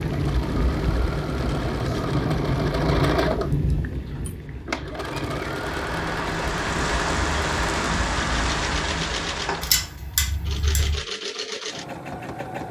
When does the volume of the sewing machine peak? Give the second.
3 s.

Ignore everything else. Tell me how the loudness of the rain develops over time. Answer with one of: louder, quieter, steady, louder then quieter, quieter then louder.
quieter then louder.